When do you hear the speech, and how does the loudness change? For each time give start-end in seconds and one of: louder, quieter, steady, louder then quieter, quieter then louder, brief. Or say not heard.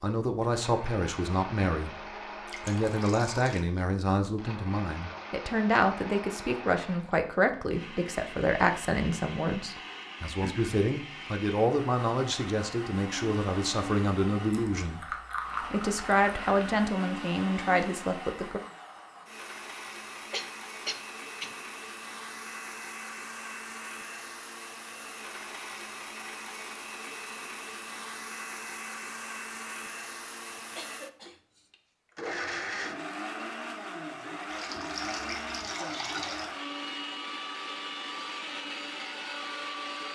0.0-1.9 brief
2.6-18.6 steady.